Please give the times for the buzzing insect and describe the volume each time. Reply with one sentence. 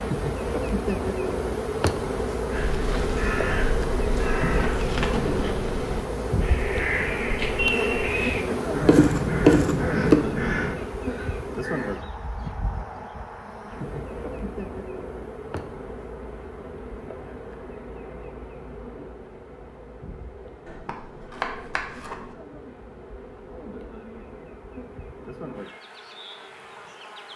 The buzzing insect can be heard from 0.0 to 27.3 s, getting quieter.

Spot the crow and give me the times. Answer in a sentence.
You can hear the crow from 2.5 to 12.0 s.